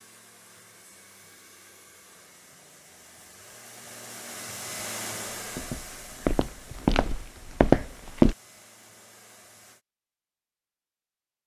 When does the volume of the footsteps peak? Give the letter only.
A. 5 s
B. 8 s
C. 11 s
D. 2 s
B.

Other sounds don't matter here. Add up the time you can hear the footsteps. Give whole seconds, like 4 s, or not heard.
3 s.